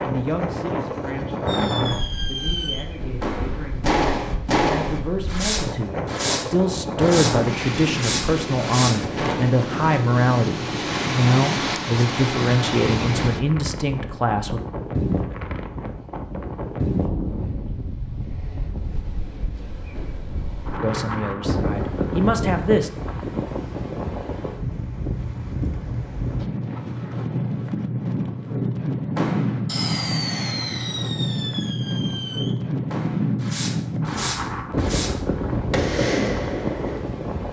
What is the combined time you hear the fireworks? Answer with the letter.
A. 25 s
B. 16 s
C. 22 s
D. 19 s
B.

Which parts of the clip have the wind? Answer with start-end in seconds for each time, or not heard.
0.0-37.4.